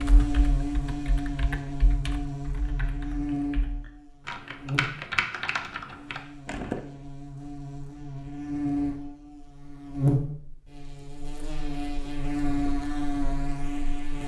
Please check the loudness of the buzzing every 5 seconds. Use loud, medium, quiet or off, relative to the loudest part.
loud, medium, loud.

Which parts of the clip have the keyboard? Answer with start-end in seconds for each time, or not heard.
0.0-6.8.